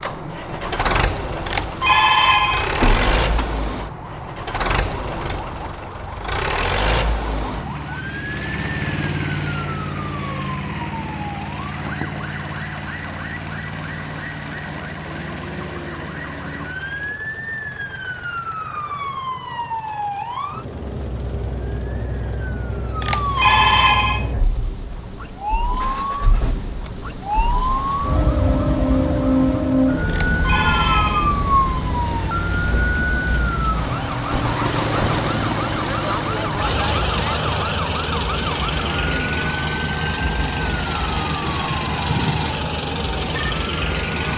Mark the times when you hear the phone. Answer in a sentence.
The phone can be heard from 1.4 to 2.8 s, from 23.0 to 24.3 s and from 30.1 to 31.4 s.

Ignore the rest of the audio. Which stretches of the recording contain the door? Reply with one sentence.
You can hear the door from 2.8 to 3.5 s.